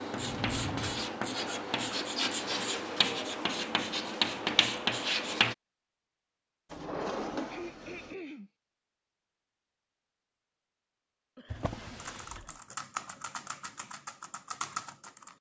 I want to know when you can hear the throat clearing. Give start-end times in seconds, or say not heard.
1.4-2.0, 7.5-8.5, 11.3-12.6.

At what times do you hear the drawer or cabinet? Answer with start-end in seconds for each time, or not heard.
0.1-1.1, 6.7-8.2, 11.5-12.5.